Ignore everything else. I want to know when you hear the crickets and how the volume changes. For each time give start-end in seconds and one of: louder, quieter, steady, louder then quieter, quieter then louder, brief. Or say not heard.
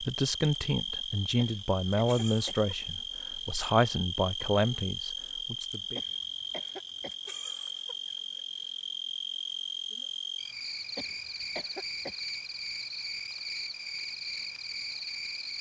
0.0-15.5 steady.